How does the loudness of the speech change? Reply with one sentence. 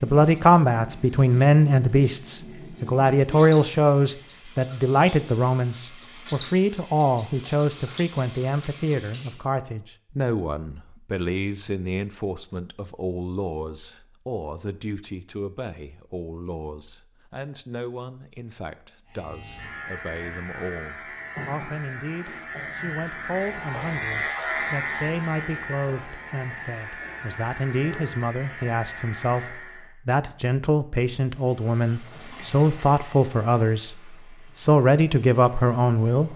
The loudness of the speech goes down, then up.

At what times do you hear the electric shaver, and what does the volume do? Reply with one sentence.
You can hear the electric shaver from 19.1 to 29.9 s, getting louder then quieter.